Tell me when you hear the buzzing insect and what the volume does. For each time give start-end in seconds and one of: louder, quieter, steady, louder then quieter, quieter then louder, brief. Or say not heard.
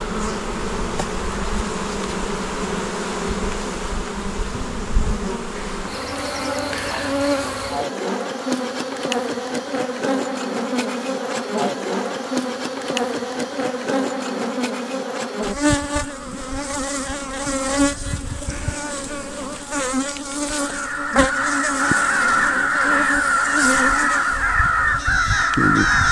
0.0-26.0 steady.